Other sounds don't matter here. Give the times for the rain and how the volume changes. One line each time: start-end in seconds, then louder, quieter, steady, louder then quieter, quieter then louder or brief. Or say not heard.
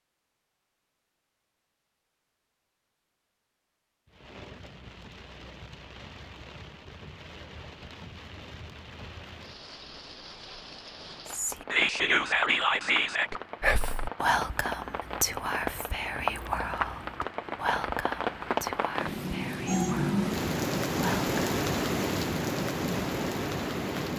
4.0-24.1 louder.